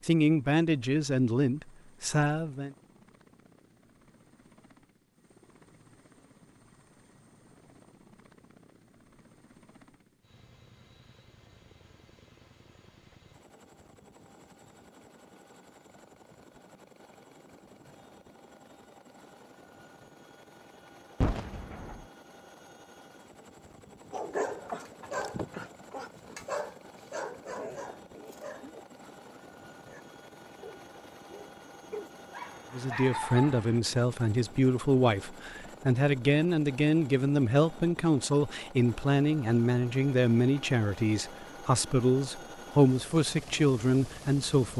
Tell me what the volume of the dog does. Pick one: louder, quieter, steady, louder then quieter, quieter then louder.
quieter then louder.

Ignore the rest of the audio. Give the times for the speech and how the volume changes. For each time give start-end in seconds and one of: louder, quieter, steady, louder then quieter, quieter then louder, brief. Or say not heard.
0.0-2.7 brief
32.7-44.7 steady.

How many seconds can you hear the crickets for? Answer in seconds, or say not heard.
not heard.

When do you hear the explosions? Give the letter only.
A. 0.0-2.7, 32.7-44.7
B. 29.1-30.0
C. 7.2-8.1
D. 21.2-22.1
D.